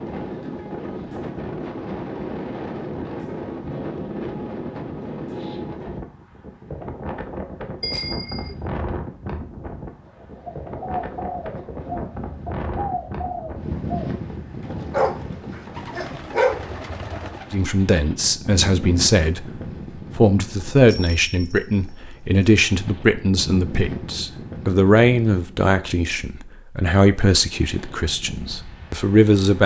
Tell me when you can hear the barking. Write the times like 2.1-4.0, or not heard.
14.9-16.6.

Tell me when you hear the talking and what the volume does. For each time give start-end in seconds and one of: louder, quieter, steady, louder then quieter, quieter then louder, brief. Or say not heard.
17.5-29.6 steady.